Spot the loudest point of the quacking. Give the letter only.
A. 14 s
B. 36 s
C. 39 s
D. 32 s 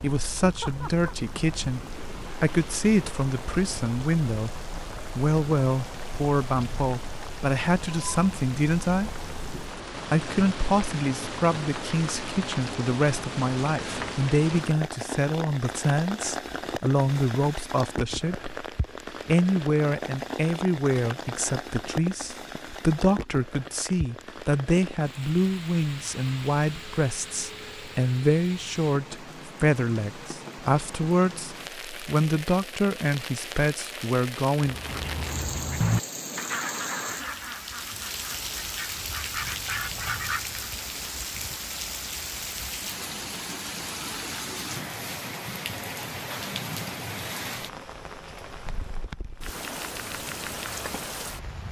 B.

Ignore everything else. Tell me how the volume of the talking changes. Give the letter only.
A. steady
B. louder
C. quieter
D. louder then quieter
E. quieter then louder
A.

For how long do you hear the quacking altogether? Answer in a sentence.
You can hear the quacking for 6 seconds altogether.